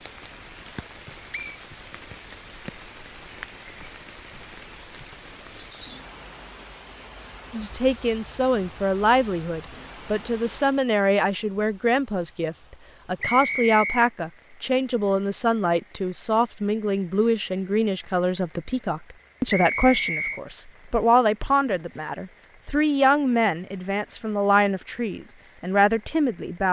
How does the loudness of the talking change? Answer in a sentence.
The loudness of the talking stays about the same.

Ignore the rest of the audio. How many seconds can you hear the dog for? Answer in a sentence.
The dog can't be heard in this clip.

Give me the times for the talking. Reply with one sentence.
The talking can be heard from 7.5 to 26.6 s.